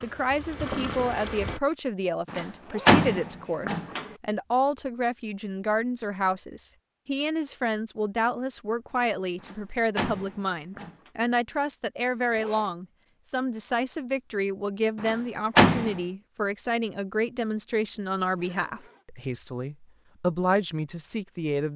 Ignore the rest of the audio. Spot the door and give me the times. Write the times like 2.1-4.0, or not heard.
2.3-4.1, 9.4-11.1, 15.0-16.0.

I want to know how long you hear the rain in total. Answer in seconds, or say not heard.
not heard.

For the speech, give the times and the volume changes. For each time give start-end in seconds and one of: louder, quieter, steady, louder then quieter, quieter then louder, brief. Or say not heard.
0.0-21.7 steady.